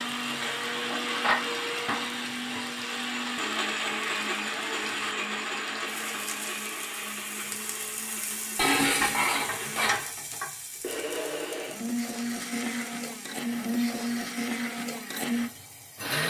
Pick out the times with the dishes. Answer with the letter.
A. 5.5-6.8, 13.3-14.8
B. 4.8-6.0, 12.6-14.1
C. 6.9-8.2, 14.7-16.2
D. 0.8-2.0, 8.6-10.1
D.